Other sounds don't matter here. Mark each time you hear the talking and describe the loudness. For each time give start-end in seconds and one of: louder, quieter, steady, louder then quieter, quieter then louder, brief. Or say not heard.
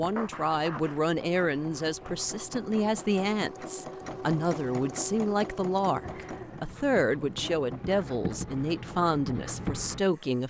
0.0-10.4 steady.